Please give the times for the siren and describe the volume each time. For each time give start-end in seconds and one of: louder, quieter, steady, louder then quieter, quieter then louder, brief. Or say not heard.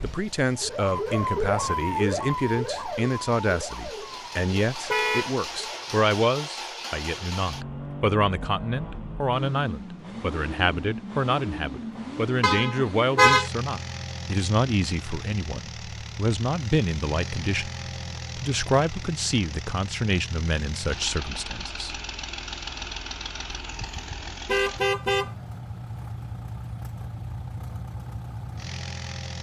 0.0-6.0 quieter.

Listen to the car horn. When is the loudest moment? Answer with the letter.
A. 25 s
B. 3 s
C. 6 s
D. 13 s
D.